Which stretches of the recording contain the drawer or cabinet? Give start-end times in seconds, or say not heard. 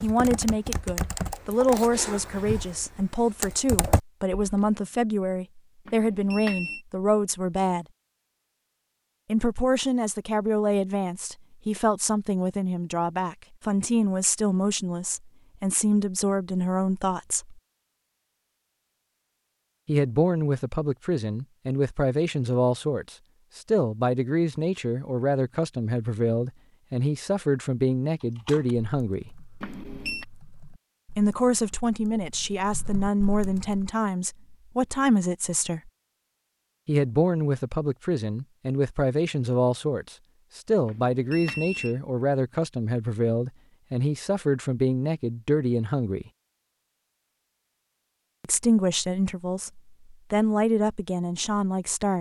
not heard.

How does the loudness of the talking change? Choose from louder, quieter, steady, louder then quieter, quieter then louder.
steady.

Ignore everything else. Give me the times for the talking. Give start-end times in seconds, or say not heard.
0.0-7.8, 9.2-17.6, 19.9-29.3, 31.1-35.9, 36.9-46.3, 48.4-52.1.